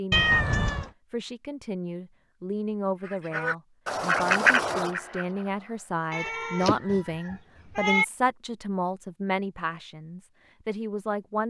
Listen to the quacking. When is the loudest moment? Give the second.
4 s.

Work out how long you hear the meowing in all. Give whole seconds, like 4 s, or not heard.
3 s.